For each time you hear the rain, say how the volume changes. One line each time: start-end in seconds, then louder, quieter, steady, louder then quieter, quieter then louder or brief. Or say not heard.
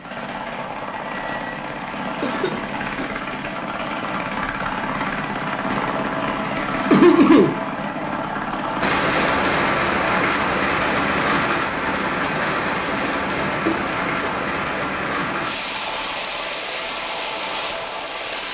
8.8-18.4 quieter.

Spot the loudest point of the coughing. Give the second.
7 s.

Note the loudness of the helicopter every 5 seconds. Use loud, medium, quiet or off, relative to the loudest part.
loud, loud, medium, medium.